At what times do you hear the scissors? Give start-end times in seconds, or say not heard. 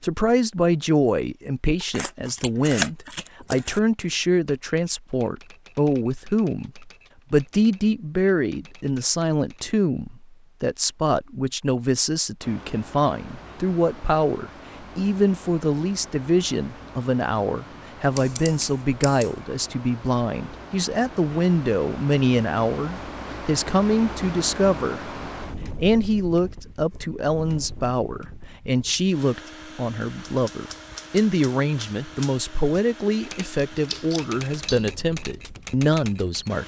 1.8-3.8, 18.1-19.4, 33.8-35.0.